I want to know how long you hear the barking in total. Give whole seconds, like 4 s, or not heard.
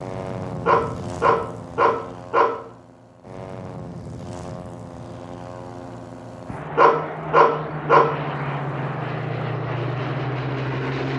3 s.